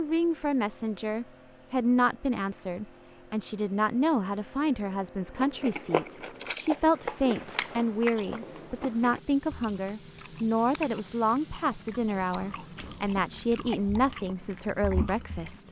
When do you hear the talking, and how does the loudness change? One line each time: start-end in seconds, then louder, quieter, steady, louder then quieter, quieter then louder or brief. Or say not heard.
0.0-15.6 steady.